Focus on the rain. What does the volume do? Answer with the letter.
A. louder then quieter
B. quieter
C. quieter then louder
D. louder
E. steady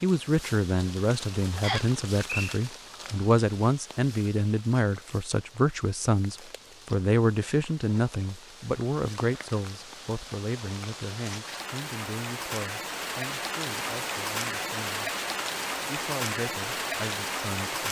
C.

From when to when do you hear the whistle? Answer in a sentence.
You can hear the whistle from 1.6 to 2.5 s.